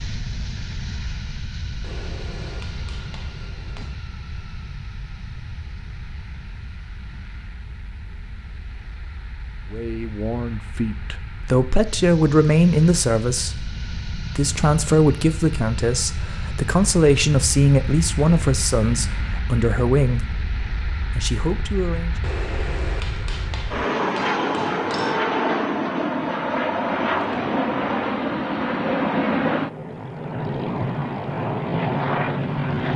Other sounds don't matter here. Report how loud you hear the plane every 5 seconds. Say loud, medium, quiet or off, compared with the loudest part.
quiet, quiet, quiet, medium, medium, loud, loud.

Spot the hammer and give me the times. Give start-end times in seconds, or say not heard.
1.8-4.0, 22.2-25.2.